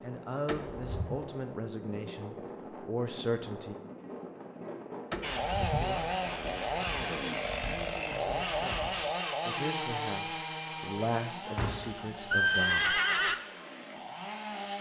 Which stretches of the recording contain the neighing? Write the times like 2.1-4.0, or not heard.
0.5-1.2, 5.1-6.0, 11.6-13.3.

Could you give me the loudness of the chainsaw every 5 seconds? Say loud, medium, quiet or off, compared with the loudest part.
off, loud, medium.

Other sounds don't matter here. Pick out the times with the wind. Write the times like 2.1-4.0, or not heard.
0.0-9.1.